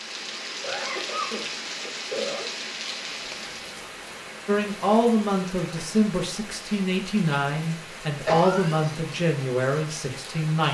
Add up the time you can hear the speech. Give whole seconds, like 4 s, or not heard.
6 s.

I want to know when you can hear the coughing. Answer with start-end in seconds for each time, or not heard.
0.6-2.5, 8.2-8.9.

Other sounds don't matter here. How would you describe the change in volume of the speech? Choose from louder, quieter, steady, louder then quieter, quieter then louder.
steady.